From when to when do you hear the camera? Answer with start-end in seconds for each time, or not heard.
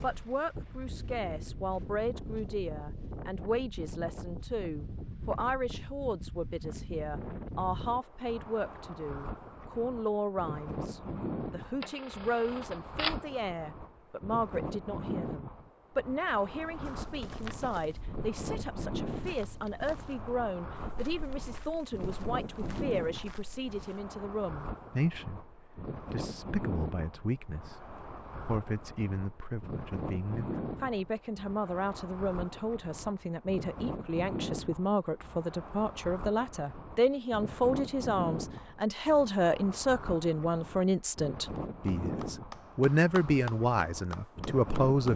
11.8-13.2.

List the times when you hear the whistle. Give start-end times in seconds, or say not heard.
not heard.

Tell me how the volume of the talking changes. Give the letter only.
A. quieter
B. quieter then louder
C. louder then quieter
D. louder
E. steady
D.